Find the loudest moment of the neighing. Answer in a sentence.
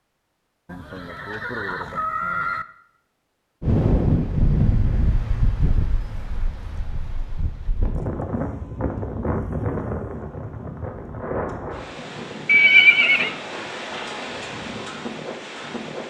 The volume of the neighing peaks at 13 seconds.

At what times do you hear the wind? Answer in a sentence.
The wind can be heard from 3.6 to 16.0 s.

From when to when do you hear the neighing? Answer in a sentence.
You can hear the neighing from 0.7 to 2.6 s and from 12.4 to 13.3 s.